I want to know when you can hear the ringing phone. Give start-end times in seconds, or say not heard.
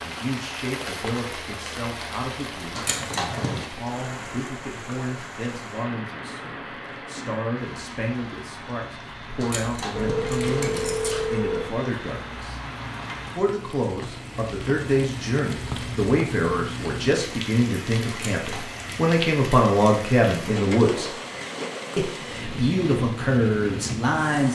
9.9-11.7.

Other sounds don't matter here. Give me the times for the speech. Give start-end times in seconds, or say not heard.
0.0-12.6, 13.3-21.1, 21.9-24.4.